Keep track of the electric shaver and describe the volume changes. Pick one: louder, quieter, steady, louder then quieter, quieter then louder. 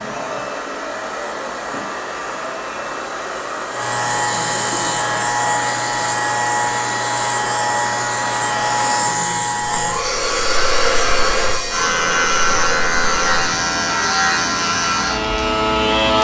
louder.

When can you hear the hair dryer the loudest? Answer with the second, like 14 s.
11 s.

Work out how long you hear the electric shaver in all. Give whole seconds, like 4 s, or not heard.
16 s.